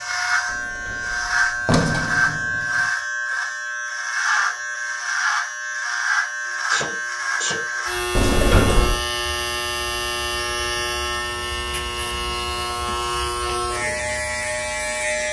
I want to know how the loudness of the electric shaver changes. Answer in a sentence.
The loudness of the electric shaver stays about the same.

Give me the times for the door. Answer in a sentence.
The door can be heard from 0.5 to 2.9 s and from 8.2 to 9.0 s.